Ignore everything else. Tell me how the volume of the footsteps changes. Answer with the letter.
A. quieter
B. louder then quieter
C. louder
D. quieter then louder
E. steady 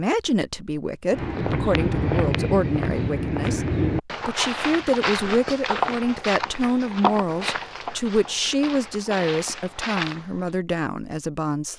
A.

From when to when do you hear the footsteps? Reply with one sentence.
You can hear the footsteps from 1.1 to 10.5 s.